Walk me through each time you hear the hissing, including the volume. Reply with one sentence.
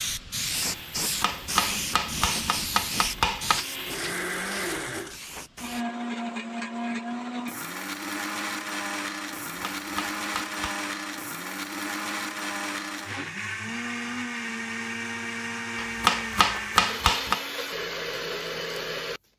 You can hear the hissing from 0.0 to 5.8 s, getting quieter.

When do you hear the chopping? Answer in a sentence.
You can hear the chopping from 1.0 to 3.6 s, from 9.6 to 10.8 s and from 15.8 to 17.4 s.